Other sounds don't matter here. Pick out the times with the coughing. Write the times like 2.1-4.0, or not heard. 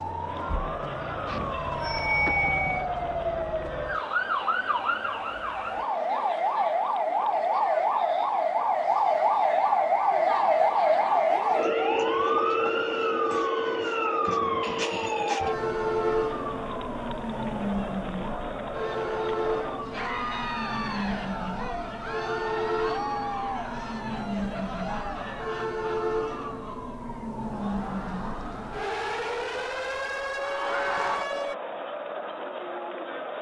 not heard.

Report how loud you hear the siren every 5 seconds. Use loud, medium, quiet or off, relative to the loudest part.
medium, loud, loud, medium, medium, medium, medium.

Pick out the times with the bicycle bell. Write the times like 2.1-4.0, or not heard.
1.2-2.9.